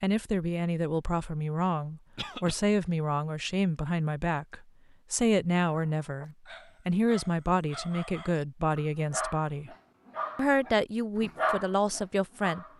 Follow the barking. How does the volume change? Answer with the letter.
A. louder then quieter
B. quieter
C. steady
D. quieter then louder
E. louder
E.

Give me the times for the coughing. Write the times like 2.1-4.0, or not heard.
2.1-2.6.